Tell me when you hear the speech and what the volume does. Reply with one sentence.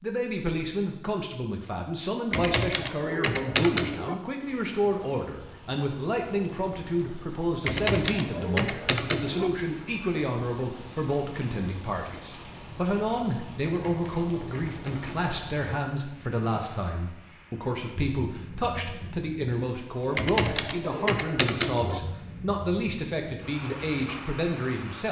You can hear the speech from 0.0 to 25.0 s, at a steady volume.